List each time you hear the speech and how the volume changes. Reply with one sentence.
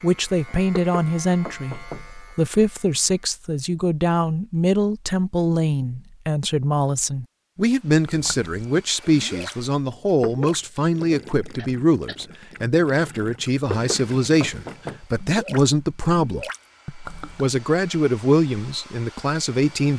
The speech can be heard from 0.0 to 19.9 s, at a steady volume.